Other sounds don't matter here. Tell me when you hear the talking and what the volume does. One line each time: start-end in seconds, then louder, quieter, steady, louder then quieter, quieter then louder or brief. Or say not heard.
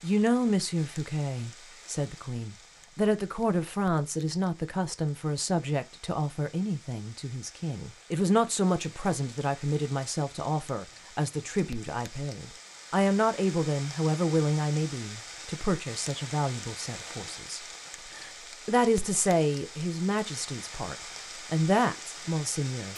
0.0-22.9 steady.